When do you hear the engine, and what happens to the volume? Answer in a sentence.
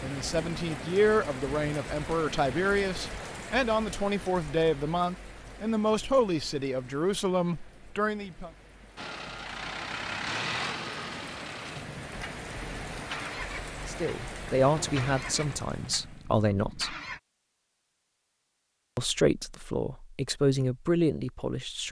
The engine can be heard from 8.9 to 17.2 s, getting quieter.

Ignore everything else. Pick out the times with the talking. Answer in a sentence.
The talking can be heard from 0.0 to 8.5 s, from 13.8 to 16.9 s and from 18.9 to 21.8 s.